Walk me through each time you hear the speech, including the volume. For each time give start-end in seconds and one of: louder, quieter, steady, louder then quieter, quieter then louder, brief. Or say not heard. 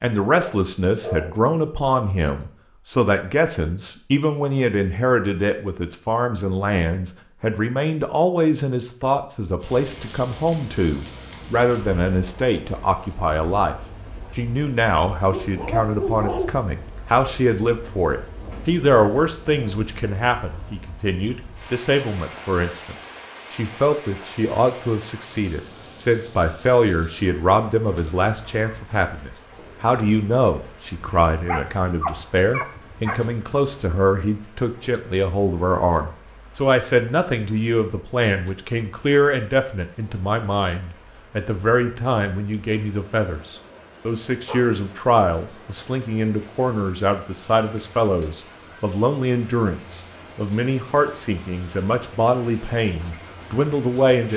0.0-13.8 steady
14.3-54.3 steady.